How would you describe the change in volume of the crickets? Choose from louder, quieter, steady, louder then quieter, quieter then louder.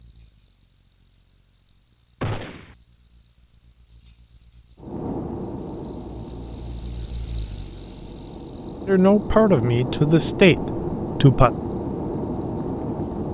louder then quieter.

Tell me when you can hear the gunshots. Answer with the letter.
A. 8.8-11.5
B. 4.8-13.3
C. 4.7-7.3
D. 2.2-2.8
D.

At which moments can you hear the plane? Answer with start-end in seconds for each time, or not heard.
4.8-13.3.